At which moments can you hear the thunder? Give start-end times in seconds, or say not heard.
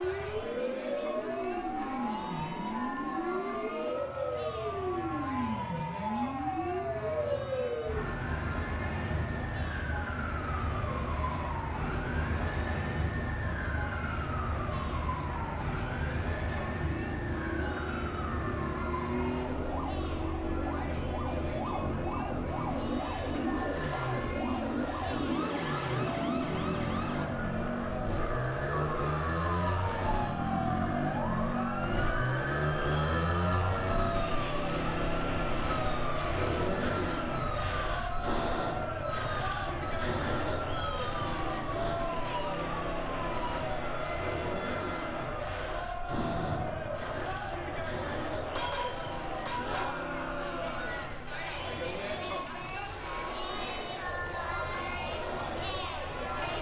46.0-47.6.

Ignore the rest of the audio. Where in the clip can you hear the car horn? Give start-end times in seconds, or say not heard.
48.5-50.0.